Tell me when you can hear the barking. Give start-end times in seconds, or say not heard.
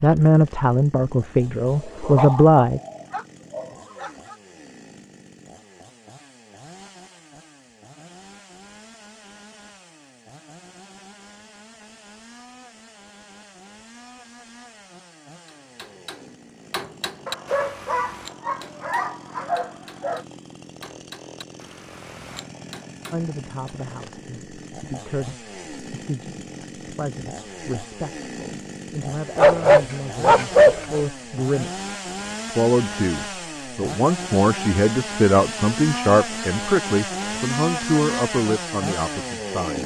1.8-4.3, 17.2-20.2, 29.4-31.1.